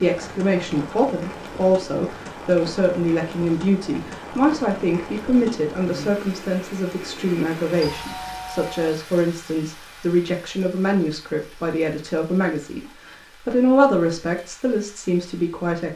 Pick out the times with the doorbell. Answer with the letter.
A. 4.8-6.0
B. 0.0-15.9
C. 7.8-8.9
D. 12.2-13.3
C.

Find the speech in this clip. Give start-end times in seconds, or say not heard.
0.0-15.9.